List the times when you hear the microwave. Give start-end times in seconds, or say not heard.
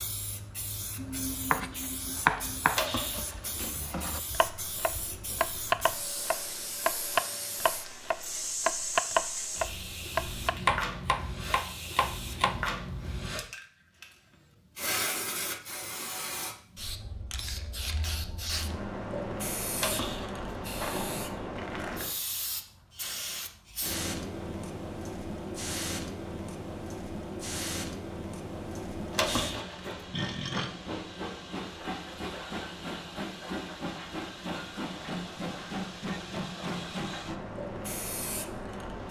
not heard.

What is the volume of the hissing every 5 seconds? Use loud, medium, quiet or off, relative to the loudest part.
medium, loud, loud, loud, loud, loud, loud, loud.